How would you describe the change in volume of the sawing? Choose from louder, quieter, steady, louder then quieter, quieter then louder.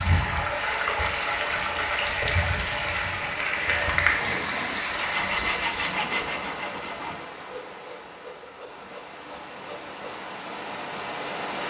quieter.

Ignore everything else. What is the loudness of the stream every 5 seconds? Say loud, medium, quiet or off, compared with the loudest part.
loud, medium, medium.